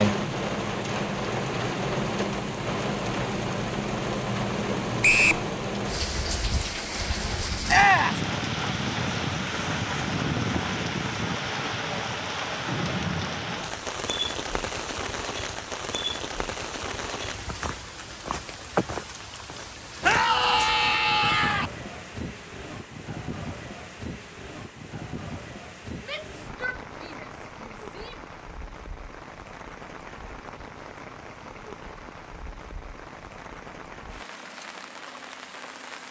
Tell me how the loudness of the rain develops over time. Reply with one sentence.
The loudness of the rain goes down.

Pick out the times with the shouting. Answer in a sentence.
You can hear the shouting from 7.7 to 8.2 s, from 20.0 to 21.7 s and from 26.0 to 28.2 s.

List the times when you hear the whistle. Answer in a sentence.
You can hear the whistle from 5.0 to 5.5 s.